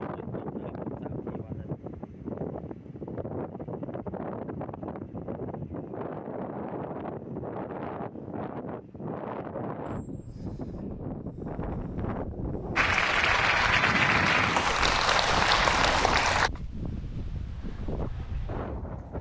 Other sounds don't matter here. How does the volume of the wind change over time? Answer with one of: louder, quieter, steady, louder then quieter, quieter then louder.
steady.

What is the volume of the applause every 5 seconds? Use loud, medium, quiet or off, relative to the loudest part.
off, off, loud, loud.